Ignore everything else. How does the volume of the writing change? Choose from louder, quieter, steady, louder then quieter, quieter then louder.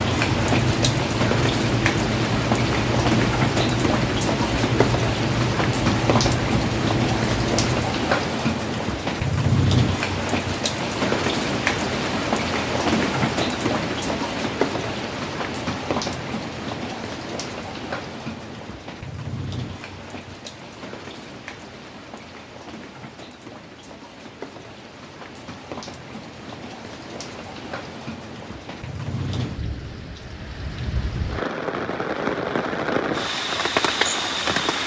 steady.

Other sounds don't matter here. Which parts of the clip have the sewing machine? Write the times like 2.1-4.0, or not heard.
not heard.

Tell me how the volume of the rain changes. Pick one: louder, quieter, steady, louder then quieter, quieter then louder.
quieter then louder.